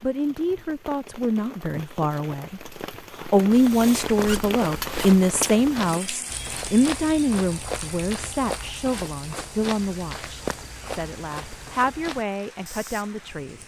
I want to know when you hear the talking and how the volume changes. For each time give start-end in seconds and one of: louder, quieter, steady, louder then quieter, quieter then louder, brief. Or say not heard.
0.0-13.6 louder then quieter.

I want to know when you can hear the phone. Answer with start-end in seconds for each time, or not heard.
not heard.